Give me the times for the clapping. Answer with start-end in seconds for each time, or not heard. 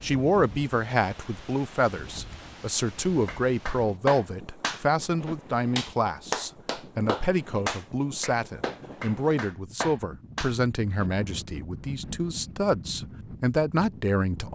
3.2-11.1.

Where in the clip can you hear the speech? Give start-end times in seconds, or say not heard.
0.0-14.5.